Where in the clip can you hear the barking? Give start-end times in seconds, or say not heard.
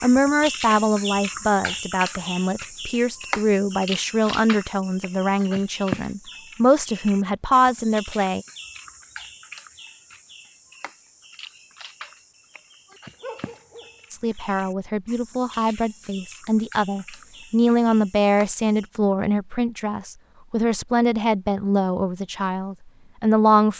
13.2-14.4.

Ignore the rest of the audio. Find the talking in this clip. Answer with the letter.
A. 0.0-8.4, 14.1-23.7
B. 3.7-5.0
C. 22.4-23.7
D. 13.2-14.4
A.